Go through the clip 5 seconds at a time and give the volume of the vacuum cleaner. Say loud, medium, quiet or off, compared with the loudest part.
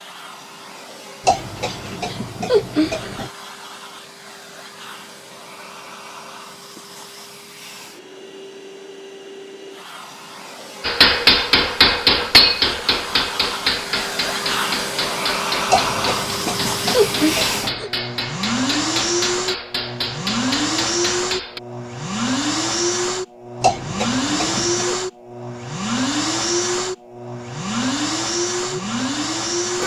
quiet, quiet, medium, loud, loud, loud.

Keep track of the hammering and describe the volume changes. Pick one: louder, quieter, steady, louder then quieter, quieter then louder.
quieter.